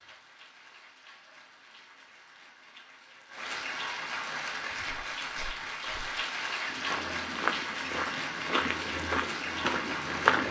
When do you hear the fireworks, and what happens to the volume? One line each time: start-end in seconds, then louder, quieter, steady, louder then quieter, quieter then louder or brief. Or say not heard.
not heard.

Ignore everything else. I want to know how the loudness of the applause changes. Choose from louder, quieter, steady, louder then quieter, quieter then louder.
louder.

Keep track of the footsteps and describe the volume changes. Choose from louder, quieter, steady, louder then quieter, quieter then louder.
louder.